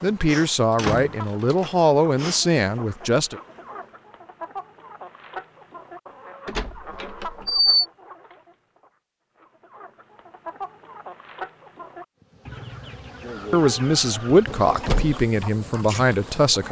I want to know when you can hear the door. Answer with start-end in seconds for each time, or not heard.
0.8-1.6, 6.5-7.8, 14.2-15.2.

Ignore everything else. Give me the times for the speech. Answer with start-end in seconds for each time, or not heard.
0.0-3.4, 13.5-16.6.